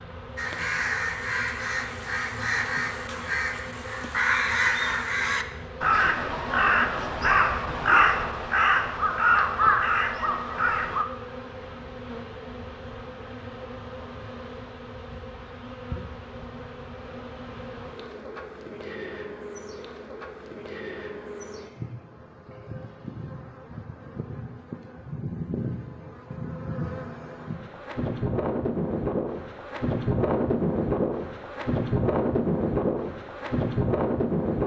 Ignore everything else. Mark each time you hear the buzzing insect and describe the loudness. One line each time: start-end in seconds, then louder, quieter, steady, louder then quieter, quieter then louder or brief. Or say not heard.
0.0-34.6 louder.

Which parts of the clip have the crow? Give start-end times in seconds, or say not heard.
0.3-11.1.